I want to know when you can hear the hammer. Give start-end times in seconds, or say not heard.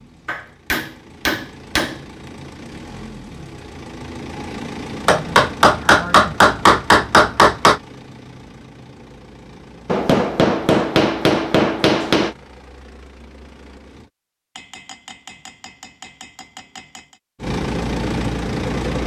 0.2-1.9, 5.0-7.8, 9.8-12.3, 14.6-17.1.